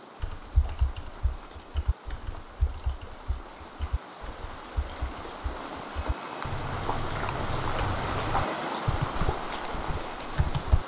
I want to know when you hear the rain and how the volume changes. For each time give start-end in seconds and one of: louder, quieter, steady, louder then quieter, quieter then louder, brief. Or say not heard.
0.0-10.8 louder.